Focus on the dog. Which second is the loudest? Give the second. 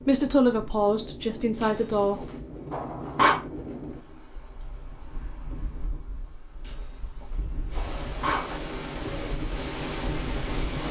3 s.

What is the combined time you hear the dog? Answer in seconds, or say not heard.
4 s.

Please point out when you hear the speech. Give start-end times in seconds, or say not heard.
0.1-2.3.